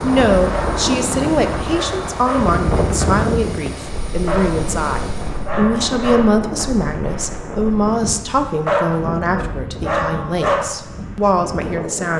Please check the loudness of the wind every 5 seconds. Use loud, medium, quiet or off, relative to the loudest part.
loud, medium, medium.